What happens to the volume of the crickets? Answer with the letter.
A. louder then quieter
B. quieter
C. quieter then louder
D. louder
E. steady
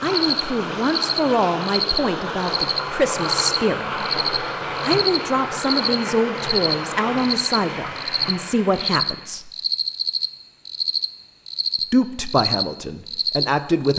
E.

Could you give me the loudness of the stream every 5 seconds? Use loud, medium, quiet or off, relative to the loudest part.
loud, loud, off.